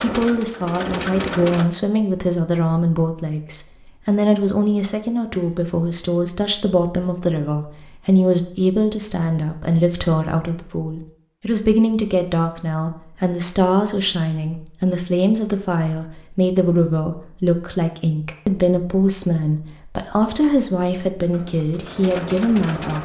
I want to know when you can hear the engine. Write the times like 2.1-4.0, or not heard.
0.0-1.7, 21.3-23.0.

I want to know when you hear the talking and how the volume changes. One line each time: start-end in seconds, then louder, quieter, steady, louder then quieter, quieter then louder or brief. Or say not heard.
0.0-23.0 steady.